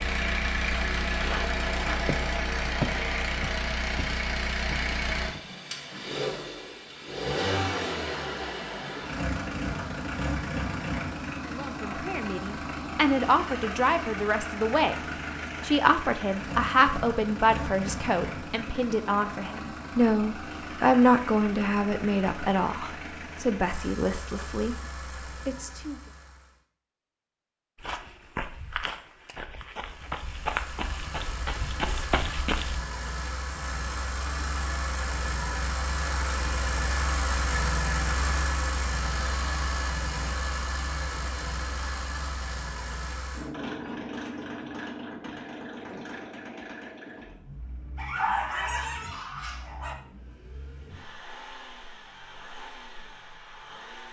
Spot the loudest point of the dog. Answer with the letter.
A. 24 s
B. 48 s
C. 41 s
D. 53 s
B.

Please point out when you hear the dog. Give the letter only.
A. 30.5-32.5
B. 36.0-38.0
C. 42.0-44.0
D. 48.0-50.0
D.